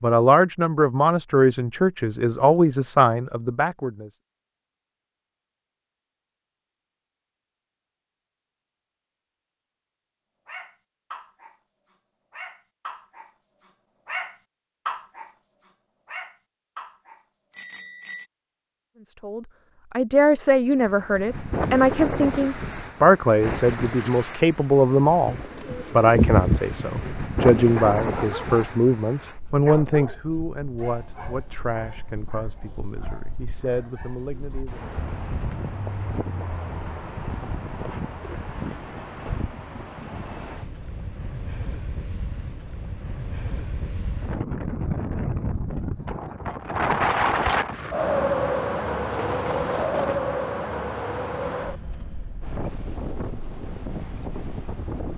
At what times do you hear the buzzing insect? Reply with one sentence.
You can't hear the buzzing insect here.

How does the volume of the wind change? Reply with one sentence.
The loudness of the wind goes down, then up.